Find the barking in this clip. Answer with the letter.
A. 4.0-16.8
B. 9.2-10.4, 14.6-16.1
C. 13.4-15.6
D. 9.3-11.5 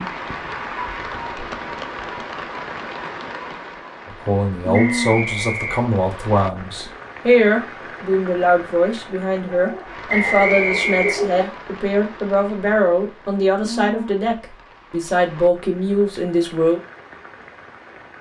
D.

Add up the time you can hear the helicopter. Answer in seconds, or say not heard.
not heard.